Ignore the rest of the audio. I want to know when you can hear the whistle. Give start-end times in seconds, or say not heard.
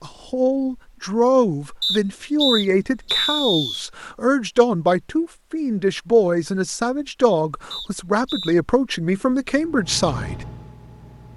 1.8-3.8, 7.7-8.6.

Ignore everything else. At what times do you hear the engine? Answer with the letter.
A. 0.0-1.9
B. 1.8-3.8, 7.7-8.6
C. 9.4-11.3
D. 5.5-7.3
C.